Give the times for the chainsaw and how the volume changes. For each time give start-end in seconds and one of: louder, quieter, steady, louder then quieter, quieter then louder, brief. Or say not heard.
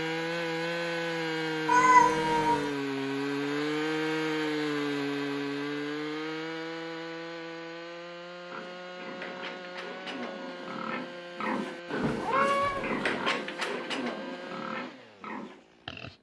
0.0-16.1 quieter.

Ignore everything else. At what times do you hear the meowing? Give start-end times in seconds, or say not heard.
1.6-2.7, 12.0-13.4.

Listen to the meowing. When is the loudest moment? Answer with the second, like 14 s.
2 s.